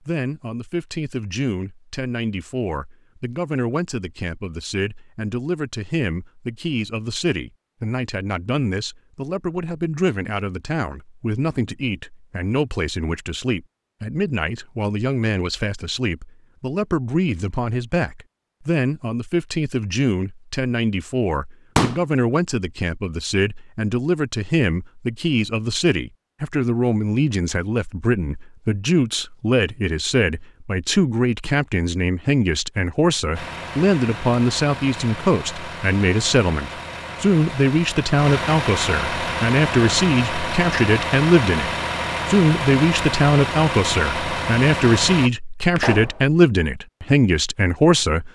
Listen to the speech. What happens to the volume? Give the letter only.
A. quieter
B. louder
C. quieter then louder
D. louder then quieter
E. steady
B.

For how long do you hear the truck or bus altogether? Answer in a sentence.
You can hear the truck or bus for 12 seconds altogether.